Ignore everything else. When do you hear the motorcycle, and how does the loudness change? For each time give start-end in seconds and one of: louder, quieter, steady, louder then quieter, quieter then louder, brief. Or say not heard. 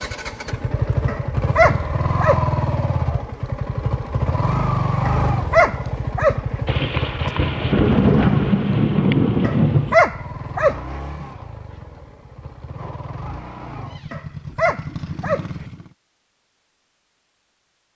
0.0-15.9 quieter.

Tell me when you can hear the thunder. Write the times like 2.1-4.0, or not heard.
6.7-9.9.